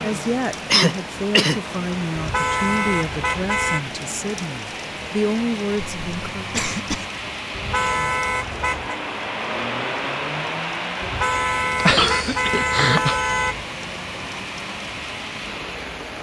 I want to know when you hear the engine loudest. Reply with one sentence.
The volume of the engine peaks at 10 seconds.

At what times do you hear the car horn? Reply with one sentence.
You can hear the car horn from 2.1 to 3.8 s, from 7.5 to 9.0 s and from 11.0 to 13.7 s.